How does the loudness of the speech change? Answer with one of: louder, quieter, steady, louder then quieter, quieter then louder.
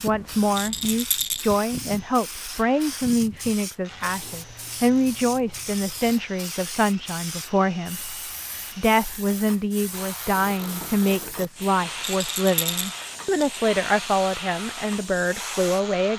steady.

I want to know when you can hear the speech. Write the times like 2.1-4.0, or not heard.
0.0-8.2, 8.8-16.1.